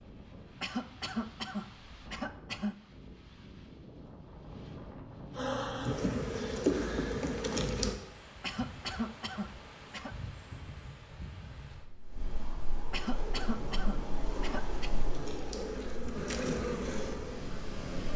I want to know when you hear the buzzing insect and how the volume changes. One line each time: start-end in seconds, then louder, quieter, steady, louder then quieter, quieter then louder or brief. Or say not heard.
5.3-8.0 brief
13.1-17.9 louder.